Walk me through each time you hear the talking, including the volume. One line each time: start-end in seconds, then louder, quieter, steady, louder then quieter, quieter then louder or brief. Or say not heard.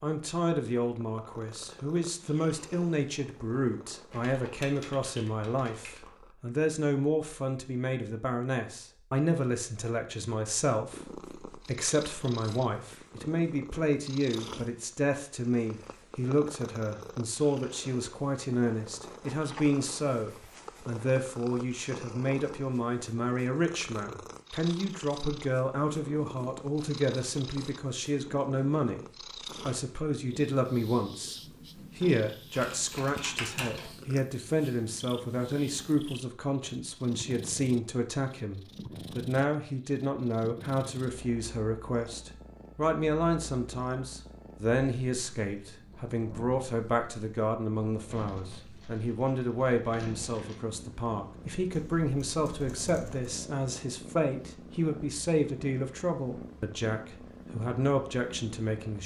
0.0-29.1 steady
29.6-59.0 steady.